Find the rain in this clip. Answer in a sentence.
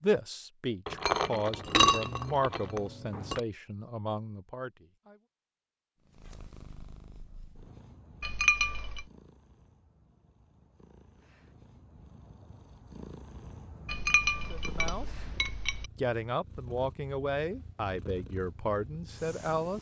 You can't hear the rain here.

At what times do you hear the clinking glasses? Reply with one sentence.
The clinking glasses can be heard from 0.8 to 3.4 s, from 8.2 to 9.1 s and from 13.8 to 15.8 s.